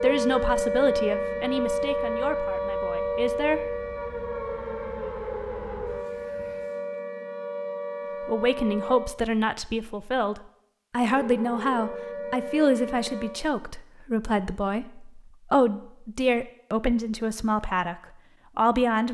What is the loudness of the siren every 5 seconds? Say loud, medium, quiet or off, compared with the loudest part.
loud, medium, medium, off.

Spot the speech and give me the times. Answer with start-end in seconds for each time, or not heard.
0.0-3.6, 8.2-19.0.